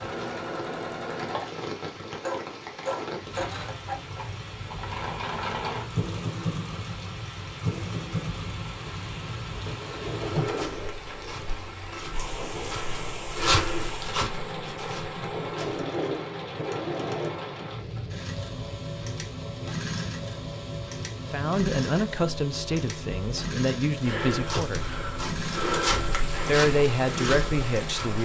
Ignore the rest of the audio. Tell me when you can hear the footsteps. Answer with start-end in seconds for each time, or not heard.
10.4-15.8, 24.0-28.2.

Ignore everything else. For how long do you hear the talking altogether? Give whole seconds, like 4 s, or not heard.
5 s.